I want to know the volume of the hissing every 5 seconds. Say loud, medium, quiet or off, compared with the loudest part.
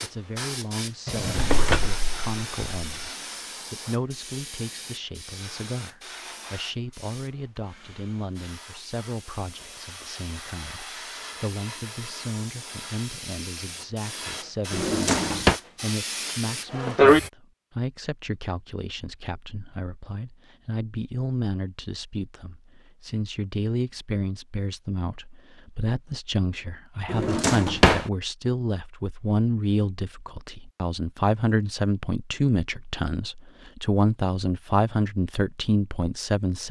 quiet, quiet, quiet, loud, off, off, off, off.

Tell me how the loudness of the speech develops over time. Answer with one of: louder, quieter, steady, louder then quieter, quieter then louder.
louder.